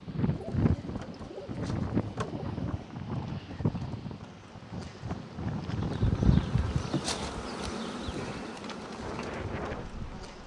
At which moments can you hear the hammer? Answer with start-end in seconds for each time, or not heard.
not heard.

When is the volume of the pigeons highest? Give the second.
6 s.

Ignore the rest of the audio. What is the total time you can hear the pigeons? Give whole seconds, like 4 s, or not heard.
5 s.